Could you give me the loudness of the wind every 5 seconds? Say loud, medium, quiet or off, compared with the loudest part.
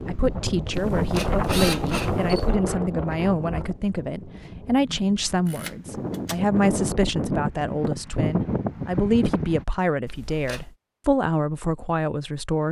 loud, loud, off.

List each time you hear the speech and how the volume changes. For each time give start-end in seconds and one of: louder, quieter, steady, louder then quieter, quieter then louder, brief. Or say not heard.
0.1-12.6 steady.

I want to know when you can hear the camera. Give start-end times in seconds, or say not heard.
0.7-2.5, 5.5-6.4, 10.1-10.8.